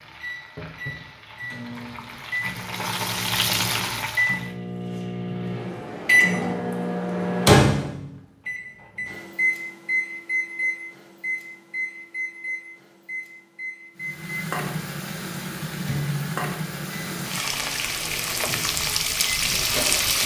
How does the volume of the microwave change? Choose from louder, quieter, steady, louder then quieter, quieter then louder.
louder then quieter.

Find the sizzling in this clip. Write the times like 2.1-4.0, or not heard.
0.0-4.5, 13.9-20.2.